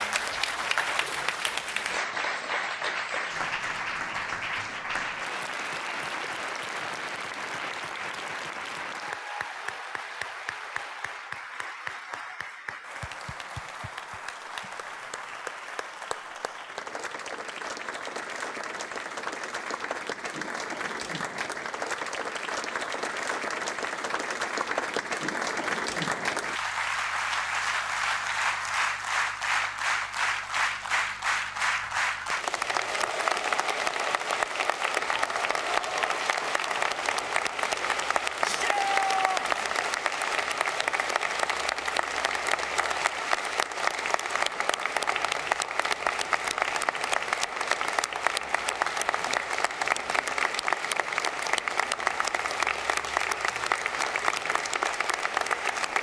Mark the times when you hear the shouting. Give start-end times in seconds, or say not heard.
38.4-39.6.